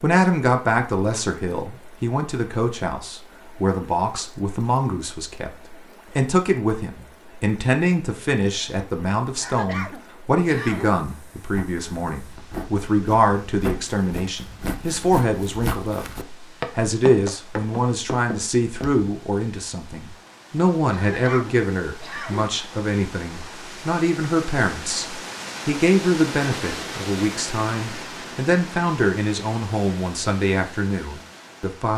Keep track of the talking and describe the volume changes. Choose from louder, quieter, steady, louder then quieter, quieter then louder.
steady.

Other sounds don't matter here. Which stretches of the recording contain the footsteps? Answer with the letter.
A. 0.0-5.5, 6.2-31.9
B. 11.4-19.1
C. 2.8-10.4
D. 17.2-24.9
B.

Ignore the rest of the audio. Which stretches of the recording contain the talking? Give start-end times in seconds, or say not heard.
0.0-5.5, 6.2-31.9.